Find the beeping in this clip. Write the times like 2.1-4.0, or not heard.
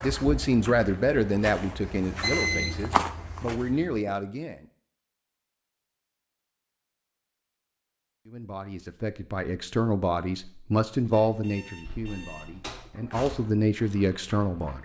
2.2-2.8, 11.1-12.9.